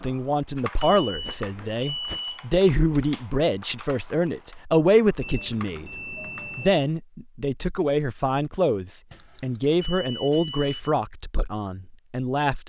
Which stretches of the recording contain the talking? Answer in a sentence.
You can hear the talking from 0.0 to 12.6 s.